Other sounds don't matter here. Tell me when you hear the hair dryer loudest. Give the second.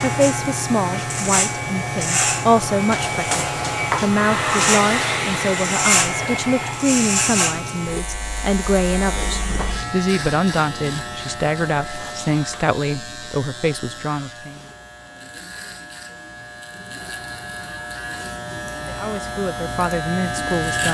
5 s.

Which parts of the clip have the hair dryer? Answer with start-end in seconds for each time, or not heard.
0.1-7.0.